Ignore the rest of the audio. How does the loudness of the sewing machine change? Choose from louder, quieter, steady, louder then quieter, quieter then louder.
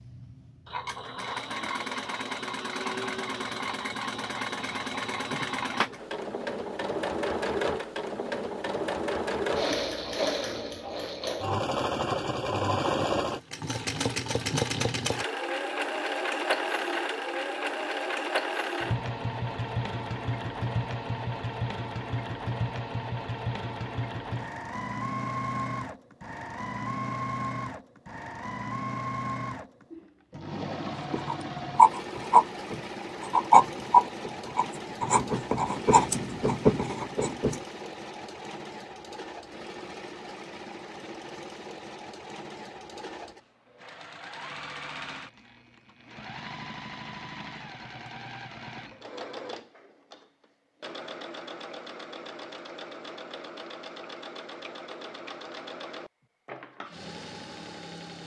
quieter.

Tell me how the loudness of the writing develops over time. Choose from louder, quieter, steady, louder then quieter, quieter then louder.
quieter.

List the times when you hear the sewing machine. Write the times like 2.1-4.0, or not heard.
0.0-58.2.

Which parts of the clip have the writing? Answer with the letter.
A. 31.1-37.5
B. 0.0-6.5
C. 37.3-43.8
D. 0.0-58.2
A.